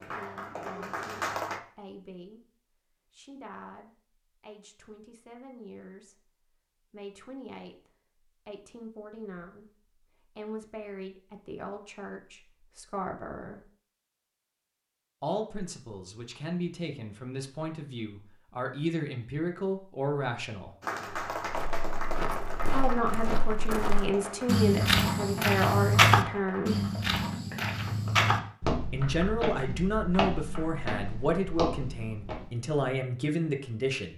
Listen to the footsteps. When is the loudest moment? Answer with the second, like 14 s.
26 s.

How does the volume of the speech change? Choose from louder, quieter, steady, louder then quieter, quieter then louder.
louder.